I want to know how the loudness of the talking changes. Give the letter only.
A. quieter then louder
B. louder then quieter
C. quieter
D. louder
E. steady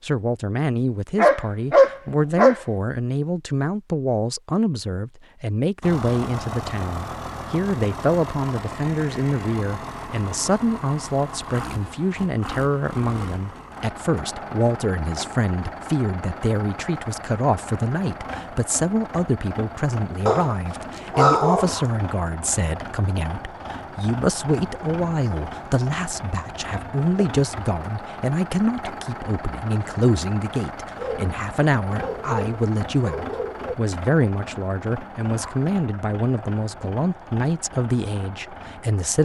E.